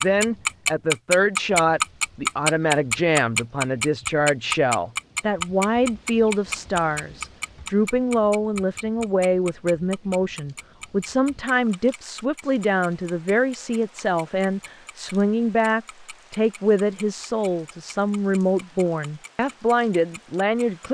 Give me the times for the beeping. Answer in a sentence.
You can't hear the beeping here.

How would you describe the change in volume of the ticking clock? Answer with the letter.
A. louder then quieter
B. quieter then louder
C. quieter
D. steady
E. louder
C.